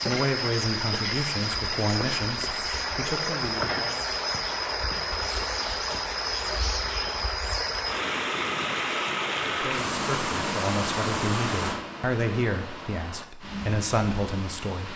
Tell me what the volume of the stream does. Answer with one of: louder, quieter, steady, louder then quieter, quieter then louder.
quieter.